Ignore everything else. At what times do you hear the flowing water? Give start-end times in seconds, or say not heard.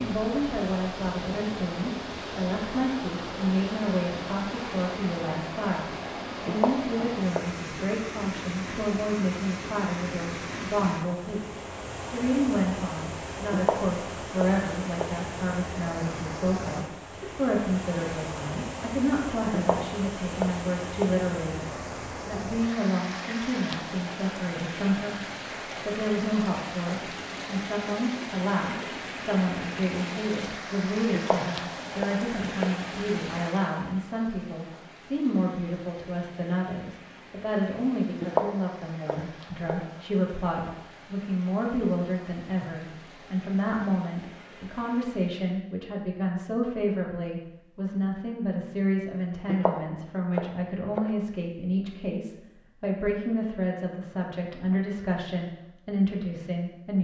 0.0-45.5.